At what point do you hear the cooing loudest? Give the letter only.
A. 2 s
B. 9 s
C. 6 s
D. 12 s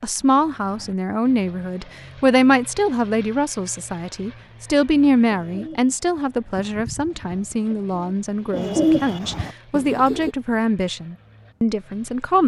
B.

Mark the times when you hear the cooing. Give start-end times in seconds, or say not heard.
5.2-10.3.